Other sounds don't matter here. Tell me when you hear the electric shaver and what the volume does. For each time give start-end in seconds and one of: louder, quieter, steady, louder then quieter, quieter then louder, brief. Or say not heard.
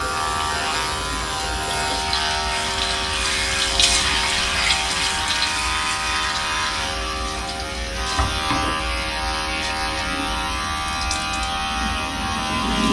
0.0-12.8 steady.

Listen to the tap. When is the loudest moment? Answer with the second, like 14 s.
4 s.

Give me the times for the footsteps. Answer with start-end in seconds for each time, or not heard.
not heard.